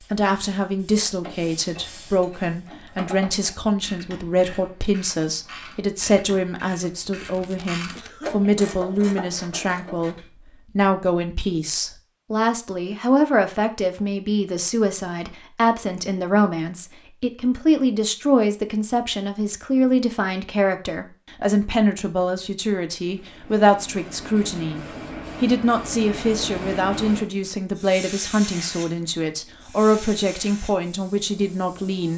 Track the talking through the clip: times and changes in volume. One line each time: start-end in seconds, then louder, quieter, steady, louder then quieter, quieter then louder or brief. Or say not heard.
0.1-32.1 steady.